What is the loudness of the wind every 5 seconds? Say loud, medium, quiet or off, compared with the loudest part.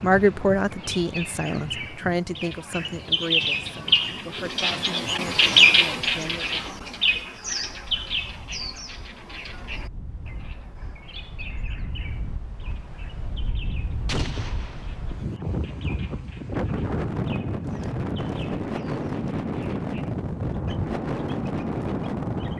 quiet, quiet, quiet, loud, loud.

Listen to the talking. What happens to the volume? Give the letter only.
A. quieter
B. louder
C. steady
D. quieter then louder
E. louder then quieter
A.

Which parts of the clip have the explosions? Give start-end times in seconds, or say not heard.
14.1-14.9.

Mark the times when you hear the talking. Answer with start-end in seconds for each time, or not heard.
0.0-6.8.